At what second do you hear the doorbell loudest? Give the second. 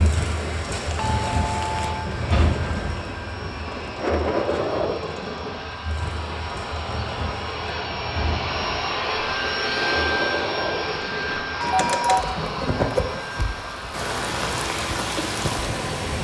12 s.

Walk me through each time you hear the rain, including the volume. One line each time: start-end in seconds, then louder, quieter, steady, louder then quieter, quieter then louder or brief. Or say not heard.
0.0-16.1 quieter then louder.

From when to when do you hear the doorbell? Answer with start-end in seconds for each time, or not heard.
0.9-2.1, 11.6-12.2.